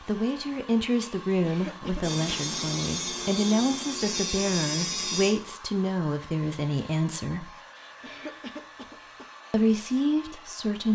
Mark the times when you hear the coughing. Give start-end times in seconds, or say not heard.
1.4-2.7, 8.0-9.2.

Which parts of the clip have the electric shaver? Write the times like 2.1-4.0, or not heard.
2.0-5.3.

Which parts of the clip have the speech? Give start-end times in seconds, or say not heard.
0.0-7.5, 9.5-10.9.